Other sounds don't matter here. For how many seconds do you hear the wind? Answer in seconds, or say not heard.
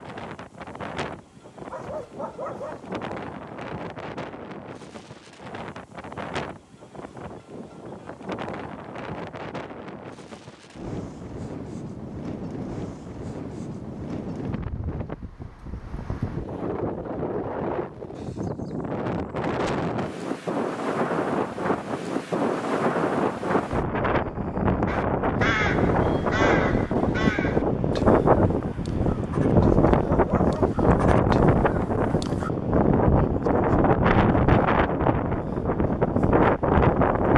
37 s.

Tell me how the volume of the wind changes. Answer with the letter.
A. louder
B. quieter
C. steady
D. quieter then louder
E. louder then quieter
A.